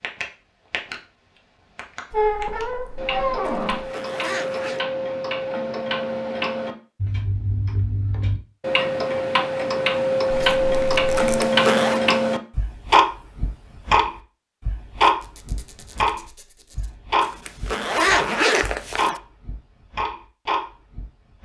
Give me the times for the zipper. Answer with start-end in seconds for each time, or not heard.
3.5-4.8, 11.2-12.0, 17.2-19.2.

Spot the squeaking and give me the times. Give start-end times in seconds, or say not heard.
2.1-3.9, 10.3-11.4, 15.0-16.9.